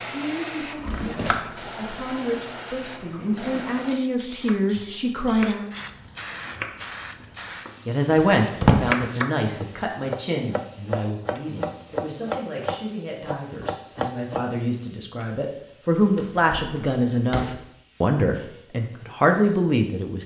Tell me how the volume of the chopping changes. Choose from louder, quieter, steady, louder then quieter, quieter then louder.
louder.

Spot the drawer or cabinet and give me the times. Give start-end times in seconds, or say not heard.
0.8-1.5, 8.2-8.9, 16.1-17.6.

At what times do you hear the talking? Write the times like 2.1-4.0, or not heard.
0.1-5.7, 7.8-20.2.